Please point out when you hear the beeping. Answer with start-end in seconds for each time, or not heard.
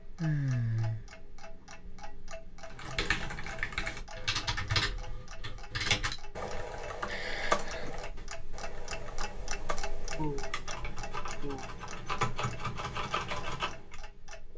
not heard.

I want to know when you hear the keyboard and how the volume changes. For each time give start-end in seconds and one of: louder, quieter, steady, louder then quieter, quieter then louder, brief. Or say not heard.
2.6-13.9 quieter then louder.